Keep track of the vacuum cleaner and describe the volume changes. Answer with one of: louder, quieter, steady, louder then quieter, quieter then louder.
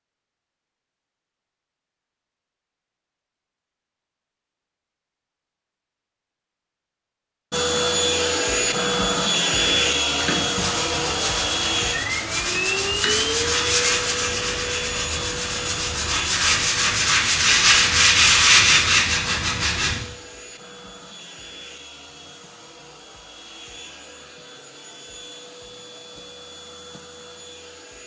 quieter.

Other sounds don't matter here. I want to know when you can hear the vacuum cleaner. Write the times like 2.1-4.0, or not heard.
7.5-28.0.